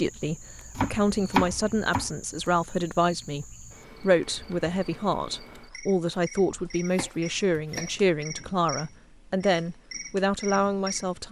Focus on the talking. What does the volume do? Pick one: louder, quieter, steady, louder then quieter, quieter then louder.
steady.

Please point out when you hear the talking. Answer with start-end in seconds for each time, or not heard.
0.0-11.2.